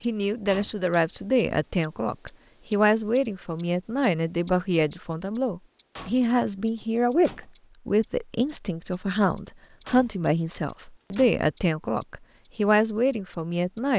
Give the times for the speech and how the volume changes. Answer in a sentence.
The speech can be heard from 0.0 to 13.9 s, at a steady volume.